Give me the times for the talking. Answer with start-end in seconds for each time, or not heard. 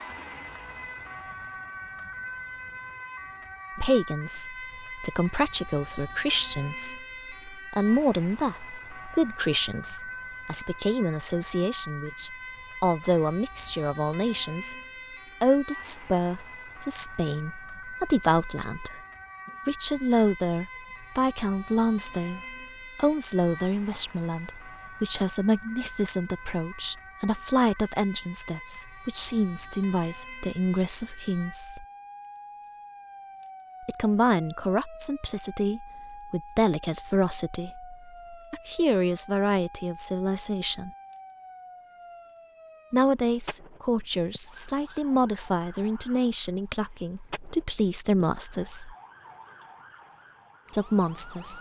3.8-14.8, 15.4-19.0, 19.6-31.9, 33.9-40.9, 42.9-49.0, 50.7-51.5.